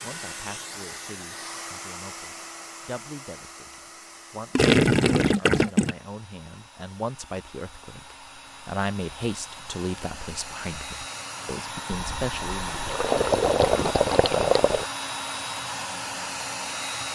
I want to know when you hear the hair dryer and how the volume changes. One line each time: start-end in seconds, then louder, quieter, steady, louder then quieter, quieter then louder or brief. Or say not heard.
0.0-17.0 quieter then louder.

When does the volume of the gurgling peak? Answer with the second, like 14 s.
5 s.